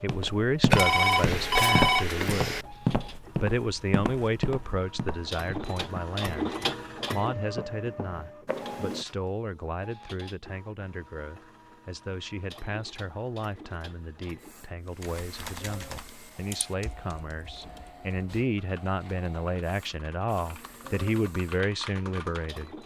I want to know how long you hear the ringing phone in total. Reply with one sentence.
You can hear the ringing phone for 2 seconds altogether.